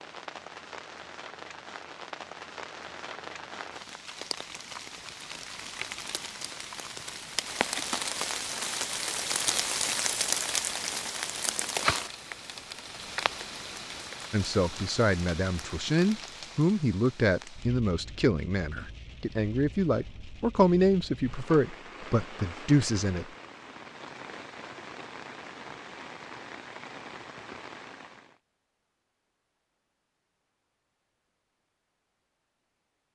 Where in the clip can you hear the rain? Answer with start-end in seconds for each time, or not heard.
0.0-28.4.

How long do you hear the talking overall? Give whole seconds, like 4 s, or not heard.
9 s.